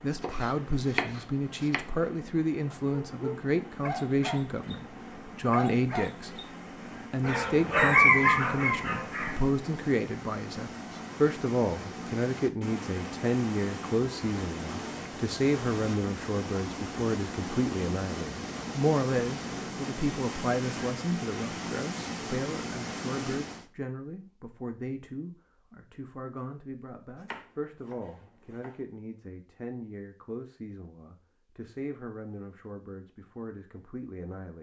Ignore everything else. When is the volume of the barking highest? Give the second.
8 s.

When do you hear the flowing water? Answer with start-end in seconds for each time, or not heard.
0.0-23.7.